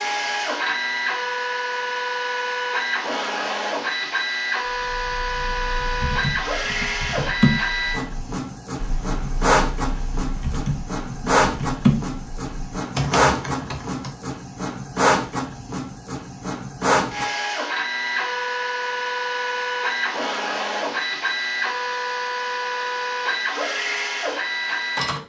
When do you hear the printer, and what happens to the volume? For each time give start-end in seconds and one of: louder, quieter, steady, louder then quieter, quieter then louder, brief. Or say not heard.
0.0-25.2 steady.